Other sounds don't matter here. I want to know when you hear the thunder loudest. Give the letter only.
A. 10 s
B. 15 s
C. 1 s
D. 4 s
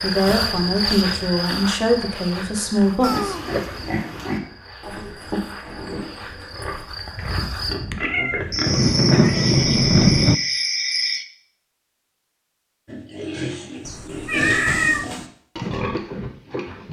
A.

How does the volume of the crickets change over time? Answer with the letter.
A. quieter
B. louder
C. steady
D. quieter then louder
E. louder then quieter
D.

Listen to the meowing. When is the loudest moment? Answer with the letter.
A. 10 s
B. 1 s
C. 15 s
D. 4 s
C.